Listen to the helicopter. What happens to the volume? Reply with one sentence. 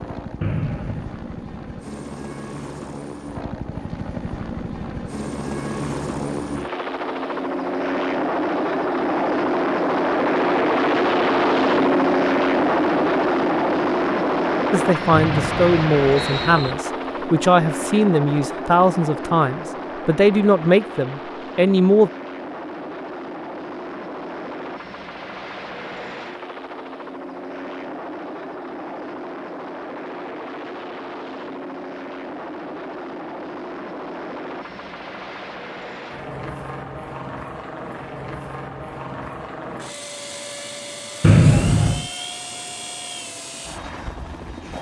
The loudness of the helicopter goes up, then down.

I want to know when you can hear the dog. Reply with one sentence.
The dog can't be heard in this clip.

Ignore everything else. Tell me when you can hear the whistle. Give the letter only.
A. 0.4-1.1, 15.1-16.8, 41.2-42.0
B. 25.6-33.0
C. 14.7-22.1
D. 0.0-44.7
A.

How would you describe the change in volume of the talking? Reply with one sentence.
The volume of the talking stays about the same.